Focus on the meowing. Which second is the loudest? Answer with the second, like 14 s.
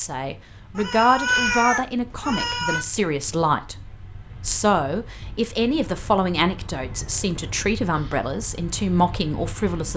1 s.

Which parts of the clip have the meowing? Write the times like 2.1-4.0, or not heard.
0.8-2.9, 5.8-7.7.